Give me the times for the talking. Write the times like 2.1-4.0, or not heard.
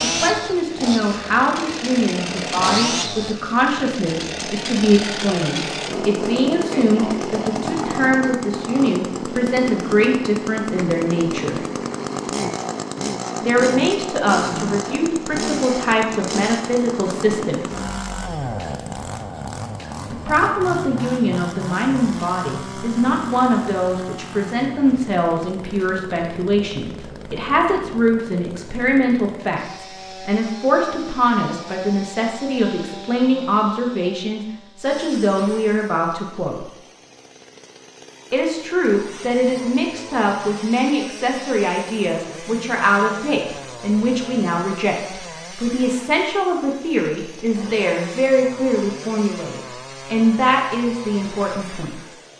0.0-11.6, 13.4-17.6, 20.1-36.6, 38.3-52.0.